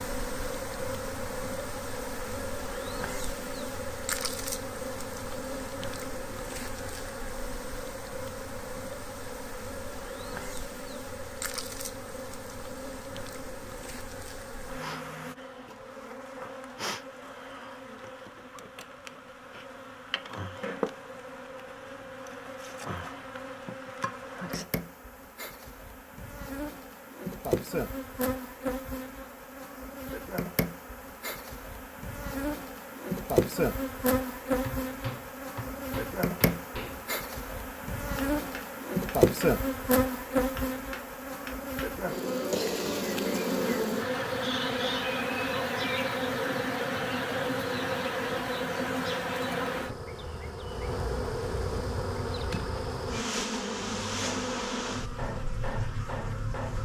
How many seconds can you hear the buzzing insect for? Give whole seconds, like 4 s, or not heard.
57 s.